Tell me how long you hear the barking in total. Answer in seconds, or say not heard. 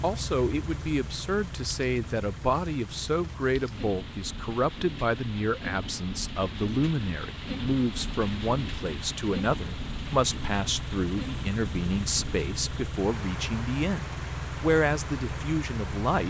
not heard.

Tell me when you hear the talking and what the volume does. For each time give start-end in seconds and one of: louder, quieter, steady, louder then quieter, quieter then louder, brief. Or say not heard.
0.0-16.2 steady.